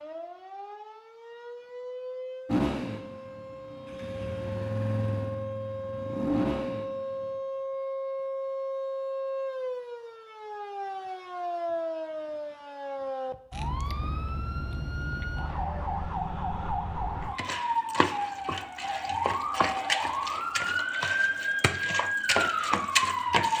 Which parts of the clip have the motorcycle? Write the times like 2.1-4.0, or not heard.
2.5-7.3.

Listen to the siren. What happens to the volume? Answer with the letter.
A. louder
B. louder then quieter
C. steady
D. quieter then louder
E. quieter
A.